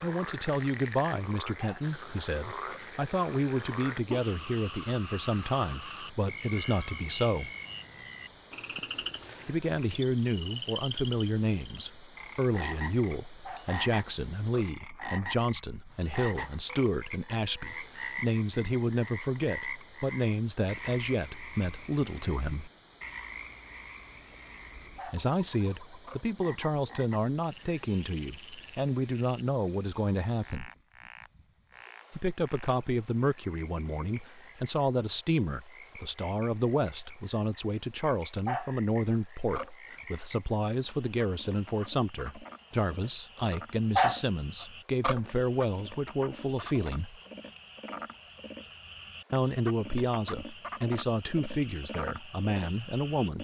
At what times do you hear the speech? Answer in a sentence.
You can hear the speech from 0.0 to 7.5 s, from 9.4 to 22.7 s, from 25.1 to 30.7 s, from 32.1 to 47.2 s and from 49.3 to 53.3 s.